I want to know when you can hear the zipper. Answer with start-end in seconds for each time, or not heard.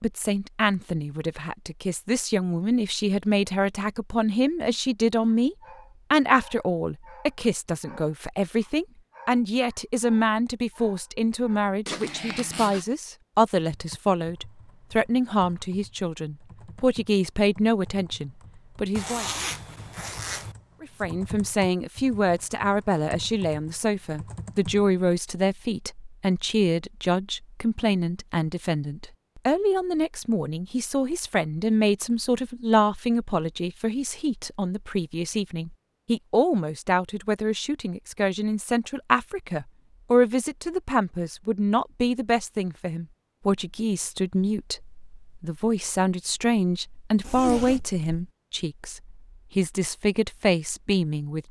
11.8-12.8, 18.9-20.6, 47.2-48.0.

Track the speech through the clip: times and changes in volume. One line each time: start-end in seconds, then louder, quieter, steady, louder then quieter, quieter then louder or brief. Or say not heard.
0.0-19.2 steady
20.8-51.4 steady.